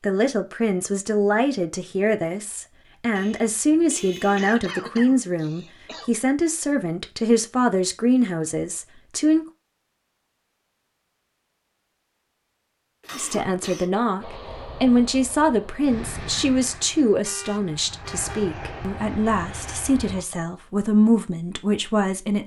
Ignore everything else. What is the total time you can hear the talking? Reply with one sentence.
The talking can be heard for 19 seconds in total.